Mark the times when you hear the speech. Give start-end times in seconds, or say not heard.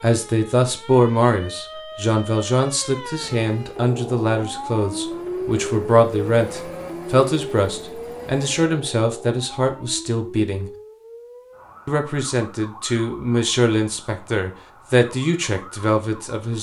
0.0-10.7, 11.8-16.5.